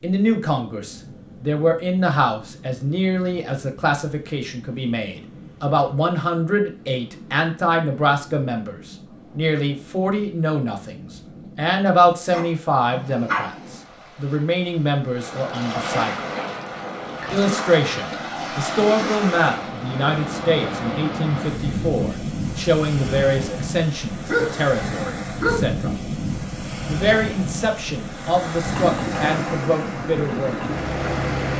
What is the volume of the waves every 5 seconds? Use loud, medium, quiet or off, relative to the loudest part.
quiet, quiet, quiet, loud, loud, loud, loud.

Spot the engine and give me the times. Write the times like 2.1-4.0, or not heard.
28.6-31.5.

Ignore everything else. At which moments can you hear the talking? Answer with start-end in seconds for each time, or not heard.
0.0-16.2, 17.3-25.9, 26.9-30.6.